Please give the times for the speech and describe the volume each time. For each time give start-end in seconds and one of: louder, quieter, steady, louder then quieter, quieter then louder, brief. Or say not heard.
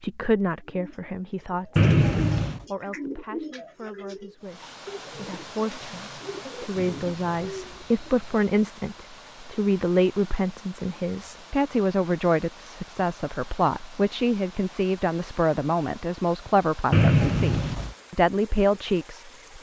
0.0-1.9 brief
2.5-19.5 louder.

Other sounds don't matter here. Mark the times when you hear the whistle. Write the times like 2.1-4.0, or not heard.
1.8-2.6, 6.8-8.3, 16.9-17.9.